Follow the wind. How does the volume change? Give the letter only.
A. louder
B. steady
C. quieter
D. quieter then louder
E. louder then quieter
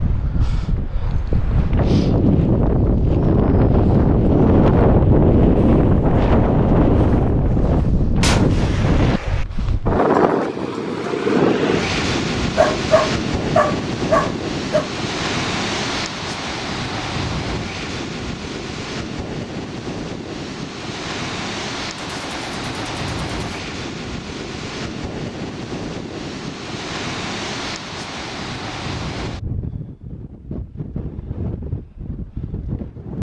C.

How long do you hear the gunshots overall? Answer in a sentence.
You can hear the gunshots for 3 seconds altogether.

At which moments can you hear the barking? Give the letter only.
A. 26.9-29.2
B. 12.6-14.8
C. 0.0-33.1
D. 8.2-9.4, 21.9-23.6
B.